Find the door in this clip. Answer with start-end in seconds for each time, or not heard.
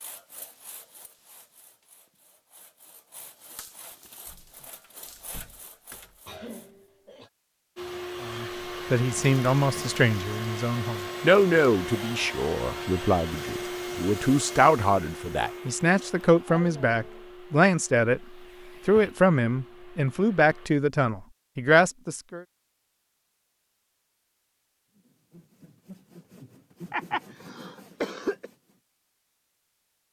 4.2-6.2.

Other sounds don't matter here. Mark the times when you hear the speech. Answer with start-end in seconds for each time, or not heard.
8.2-18.2, 18.9-22.4.